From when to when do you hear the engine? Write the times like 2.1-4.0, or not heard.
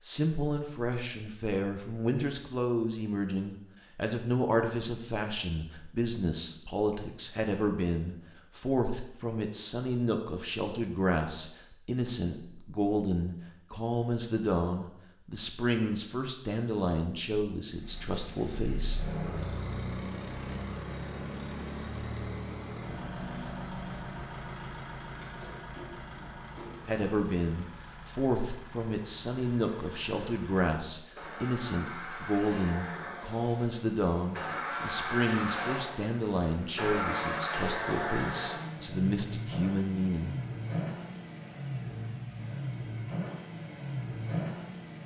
17.7-45.0.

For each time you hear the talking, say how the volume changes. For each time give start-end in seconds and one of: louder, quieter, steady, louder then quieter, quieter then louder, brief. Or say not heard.
0.0-19.0 steady
26.9-40.4 steady.